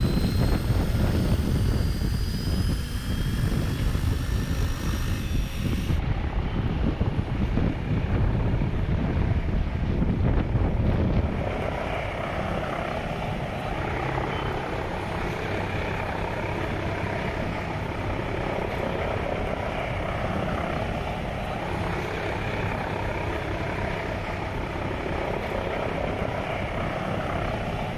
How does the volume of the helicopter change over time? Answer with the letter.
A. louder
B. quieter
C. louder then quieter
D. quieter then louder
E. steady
A.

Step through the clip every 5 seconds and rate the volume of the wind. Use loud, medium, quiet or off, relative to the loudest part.
loud, loud, loud, medium, medium, medium.